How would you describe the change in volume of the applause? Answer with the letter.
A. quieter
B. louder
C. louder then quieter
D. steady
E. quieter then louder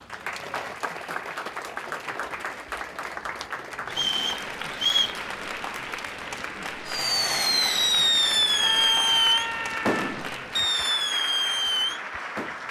D.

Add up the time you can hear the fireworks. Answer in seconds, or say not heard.
6 s.